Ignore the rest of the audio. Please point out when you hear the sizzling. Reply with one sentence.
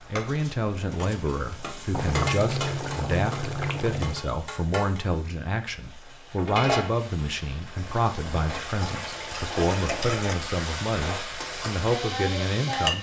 The sizzling can be heard from 0.0 to 12.9 s.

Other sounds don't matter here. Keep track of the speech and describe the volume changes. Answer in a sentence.
The loudness of the speech stays about the same.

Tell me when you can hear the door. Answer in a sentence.
The door can't be heard in this clip.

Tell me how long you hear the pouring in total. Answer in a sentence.
You can hear the pouring for 4 seconds altogether.